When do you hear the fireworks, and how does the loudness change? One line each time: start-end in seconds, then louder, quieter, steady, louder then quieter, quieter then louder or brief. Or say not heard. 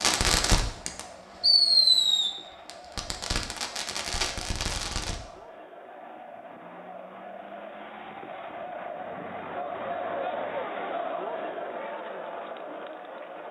0.0-5.2 louder then quieter.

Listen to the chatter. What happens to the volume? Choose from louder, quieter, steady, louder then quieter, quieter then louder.
louder.